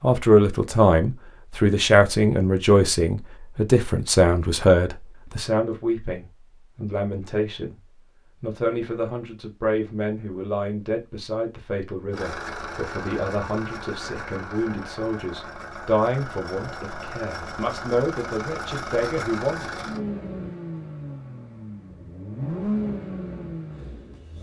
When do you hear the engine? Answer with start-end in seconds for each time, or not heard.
12.1-24.3.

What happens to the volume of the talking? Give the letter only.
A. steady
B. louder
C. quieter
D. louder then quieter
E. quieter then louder
C.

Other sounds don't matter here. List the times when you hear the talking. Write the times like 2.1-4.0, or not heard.
0.0-7.8, 8.4-19.7.